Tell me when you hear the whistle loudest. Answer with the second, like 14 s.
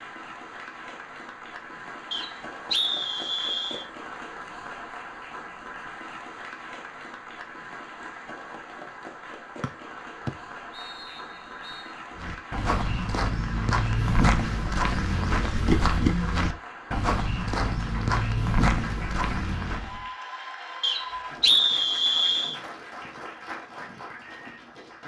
22 s.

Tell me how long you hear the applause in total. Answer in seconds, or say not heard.
25 s.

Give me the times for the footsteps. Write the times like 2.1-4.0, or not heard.
12.2-20.1.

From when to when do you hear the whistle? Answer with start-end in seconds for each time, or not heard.
2.1-3.9, 9.6-11.8, 20.8-22.6.